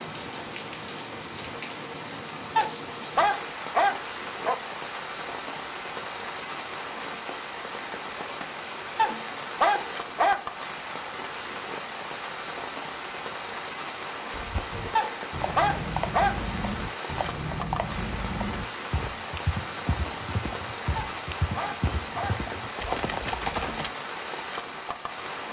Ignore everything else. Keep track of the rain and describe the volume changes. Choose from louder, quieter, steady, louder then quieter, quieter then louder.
steady.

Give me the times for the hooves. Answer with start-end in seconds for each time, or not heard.
14.3-23.9.